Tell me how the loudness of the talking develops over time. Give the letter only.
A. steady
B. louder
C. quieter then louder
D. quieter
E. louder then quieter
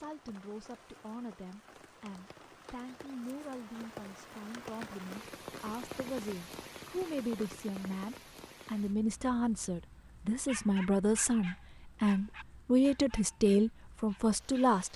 B.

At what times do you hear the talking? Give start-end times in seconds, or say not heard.
0.0-14.9.